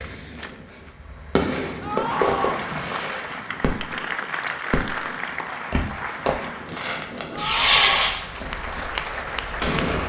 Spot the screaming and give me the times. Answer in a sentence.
You can hear the screaming from 1.8 to 2.6 s and from 7.3 to 8.2 s.